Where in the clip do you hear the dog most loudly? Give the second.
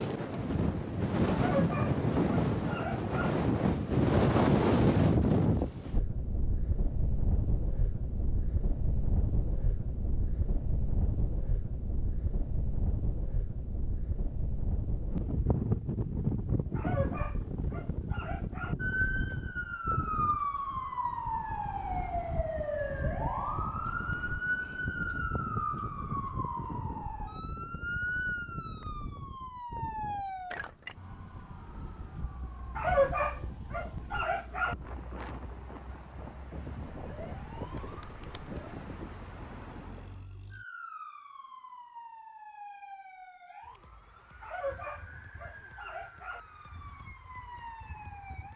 33 s.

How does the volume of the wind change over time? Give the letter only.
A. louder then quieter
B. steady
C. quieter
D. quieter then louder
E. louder
C.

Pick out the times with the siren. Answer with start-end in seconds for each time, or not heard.
18.8-48.5.